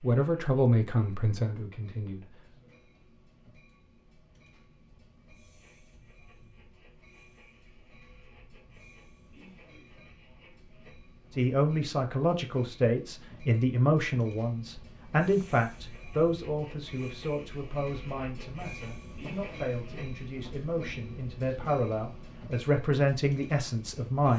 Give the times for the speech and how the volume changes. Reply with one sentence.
The speech can be heard briefly from 0.0 to 2.4 s; and from 11.3 to 24.3 s, getting quieter then louder.